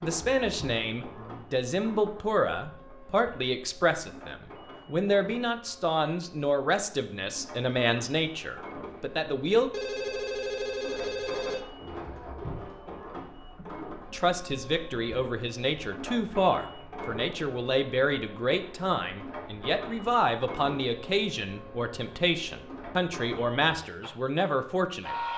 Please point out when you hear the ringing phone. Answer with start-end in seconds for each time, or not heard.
9.7-11.7.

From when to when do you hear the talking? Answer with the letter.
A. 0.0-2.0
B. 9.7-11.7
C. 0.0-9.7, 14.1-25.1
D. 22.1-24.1
C.